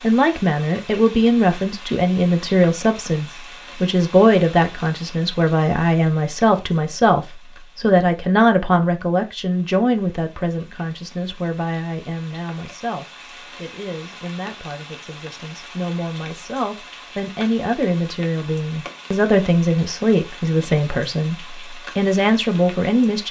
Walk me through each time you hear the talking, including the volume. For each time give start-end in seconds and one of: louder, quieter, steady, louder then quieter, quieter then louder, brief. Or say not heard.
0.0-23.2 quieter then louder.